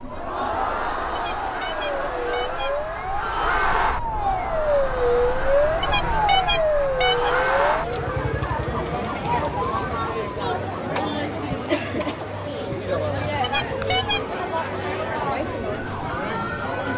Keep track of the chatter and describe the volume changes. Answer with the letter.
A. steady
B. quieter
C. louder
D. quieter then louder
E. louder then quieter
A.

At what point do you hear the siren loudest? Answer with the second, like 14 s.
5 s.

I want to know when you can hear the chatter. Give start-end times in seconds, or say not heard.
0.0-16.9.